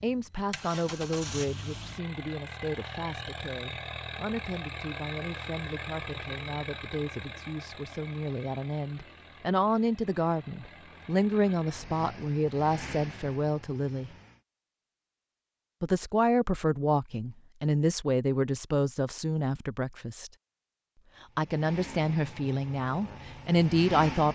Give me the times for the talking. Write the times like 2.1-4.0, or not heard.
0.0-14.1, 15.8-20.3, 21.4-24.2.